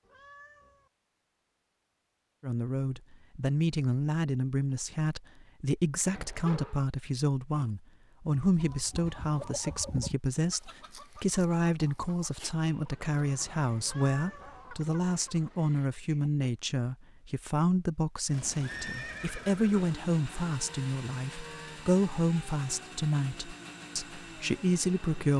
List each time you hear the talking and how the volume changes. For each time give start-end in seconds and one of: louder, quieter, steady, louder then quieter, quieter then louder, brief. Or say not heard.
2.4-25.3 steady.